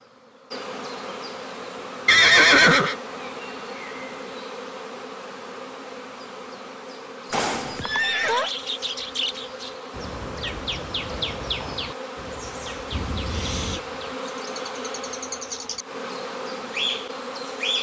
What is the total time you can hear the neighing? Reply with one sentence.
The neighing can be heard for 3 seconds in total.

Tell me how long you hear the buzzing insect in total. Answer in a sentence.
You can hear the buzzing insect for 18 seconds altogether.